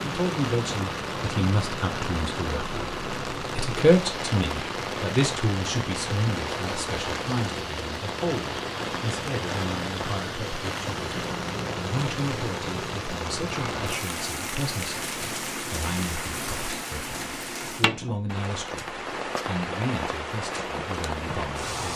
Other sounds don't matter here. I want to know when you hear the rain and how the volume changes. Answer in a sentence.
You can hear the rain from 0.0 to 21.9 s, at a steady volume.